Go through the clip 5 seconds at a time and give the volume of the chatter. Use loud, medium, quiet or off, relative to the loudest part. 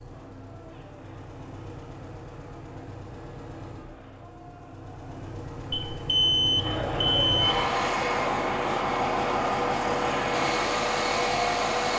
quiet, loud, loud.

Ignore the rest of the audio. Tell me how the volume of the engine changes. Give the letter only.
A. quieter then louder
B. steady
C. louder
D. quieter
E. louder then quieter
C.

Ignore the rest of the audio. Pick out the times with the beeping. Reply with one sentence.
You can hear the beeping from 5.7 to 7.6 s.